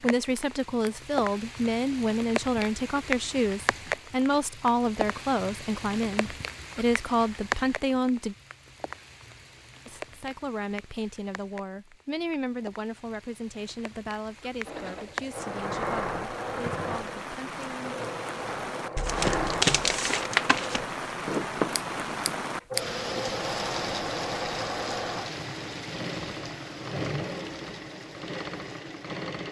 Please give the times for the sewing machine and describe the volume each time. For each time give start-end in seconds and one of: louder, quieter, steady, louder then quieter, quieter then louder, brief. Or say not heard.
14.7-29.4 steady.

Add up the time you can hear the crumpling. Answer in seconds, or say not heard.
2 s.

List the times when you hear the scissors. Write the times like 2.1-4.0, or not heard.
0.3-0.9, 21.7-22.8.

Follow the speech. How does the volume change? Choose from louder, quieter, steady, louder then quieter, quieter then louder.
quieter.